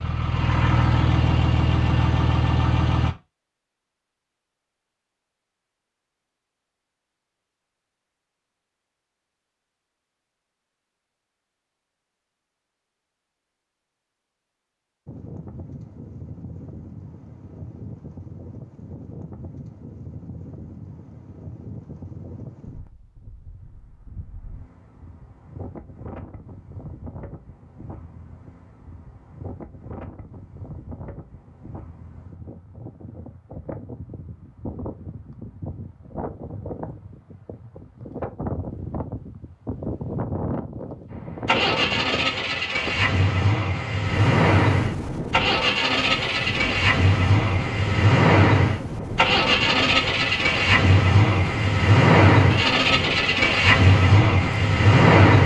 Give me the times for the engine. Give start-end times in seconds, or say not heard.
0.0-3.1, 41.1-55.4.